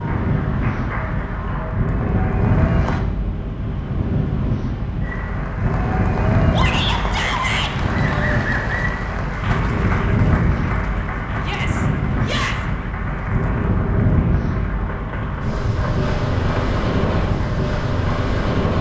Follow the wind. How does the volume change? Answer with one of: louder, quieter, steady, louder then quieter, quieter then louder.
steady.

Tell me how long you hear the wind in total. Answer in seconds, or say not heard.
19 s.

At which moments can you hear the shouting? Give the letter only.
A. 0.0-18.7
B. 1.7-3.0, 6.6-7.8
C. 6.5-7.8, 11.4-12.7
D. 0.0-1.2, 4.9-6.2
C.